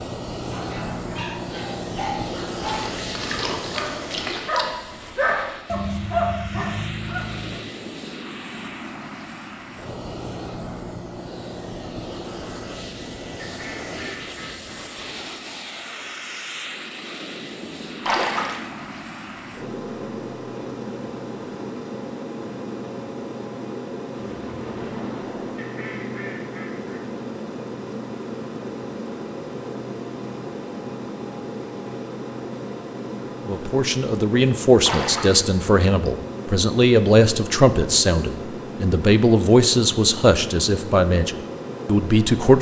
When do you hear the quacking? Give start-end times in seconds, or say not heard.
13.3-14.8, 25.6-27.1.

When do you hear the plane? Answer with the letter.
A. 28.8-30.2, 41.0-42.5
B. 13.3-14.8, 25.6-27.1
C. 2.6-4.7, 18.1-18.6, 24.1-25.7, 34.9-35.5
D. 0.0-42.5
D.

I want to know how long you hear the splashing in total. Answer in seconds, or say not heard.
5 s.